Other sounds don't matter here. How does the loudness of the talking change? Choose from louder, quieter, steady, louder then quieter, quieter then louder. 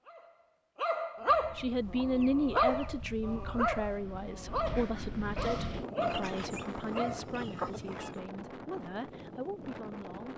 quieter.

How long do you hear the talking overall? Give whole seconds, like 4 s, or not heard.
9 s.